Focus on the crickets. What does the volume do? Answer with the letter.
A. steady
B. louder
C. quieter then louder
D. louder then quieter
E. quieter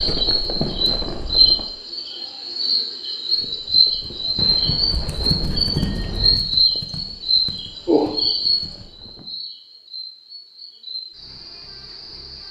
E.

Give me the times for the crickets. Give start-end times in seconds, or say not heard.
0.0-12.4.